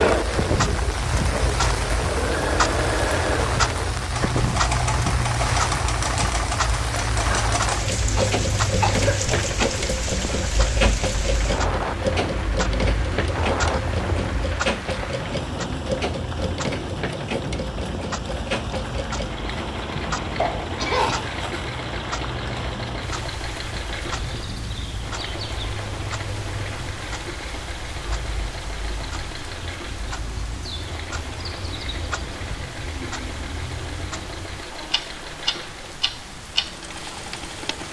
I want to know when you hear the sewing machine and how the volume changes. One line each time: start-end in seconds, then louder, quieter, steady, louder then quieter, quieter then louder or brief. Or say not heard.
0.0-37.8 quieter.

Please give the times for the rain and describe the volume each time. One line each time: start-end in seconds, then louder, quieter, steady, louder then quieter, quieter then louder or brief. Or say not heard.
0.0-37.8 quieter.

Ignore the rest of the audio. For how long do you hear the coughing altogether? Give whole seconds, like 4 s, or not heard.
2 s.